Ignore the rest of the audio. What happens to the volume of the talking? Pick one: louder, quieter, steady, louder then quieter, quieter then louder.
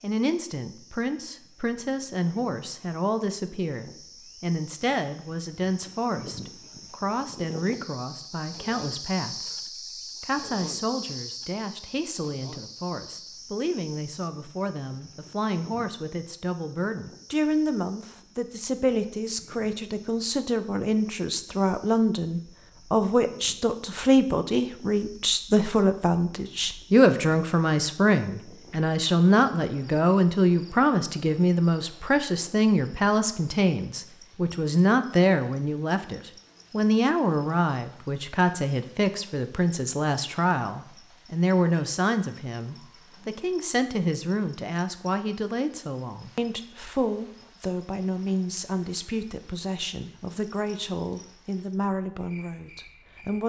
louder then quieter.